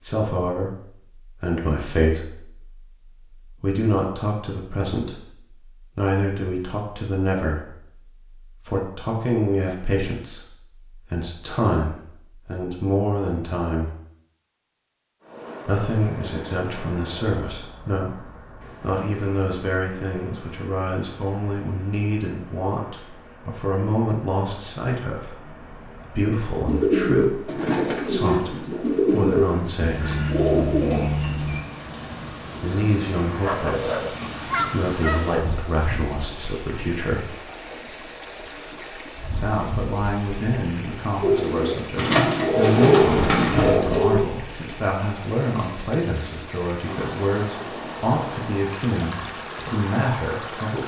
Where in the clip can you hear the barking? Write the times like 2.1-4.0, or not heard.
33.4-35.5.